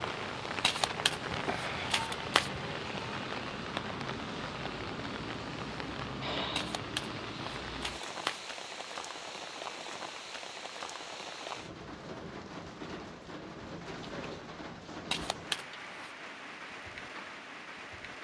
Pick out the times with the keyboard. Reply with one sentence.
You can't hear the keyboard here.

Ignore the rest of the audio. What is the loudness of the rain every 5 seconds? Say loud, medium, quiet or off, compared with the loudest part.
loud, loud, medium, medium.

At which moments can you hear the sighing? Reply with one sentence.
You can hear the sighing from 6.2 to 6.8 s.